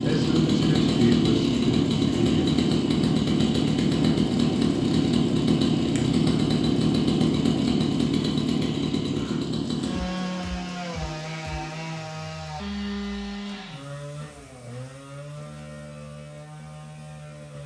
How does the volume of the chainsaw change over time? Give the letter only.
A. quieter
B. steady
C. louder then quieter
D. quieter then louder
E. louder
A.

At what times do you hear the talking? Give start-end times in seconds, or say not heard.
0.0-2.5.